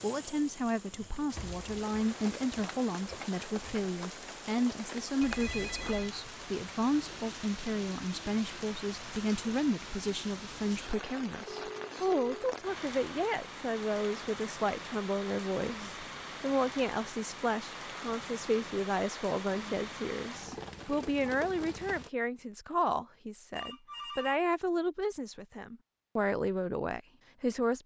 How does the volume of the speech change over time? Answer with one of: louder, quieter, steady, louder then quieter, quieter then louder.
steady.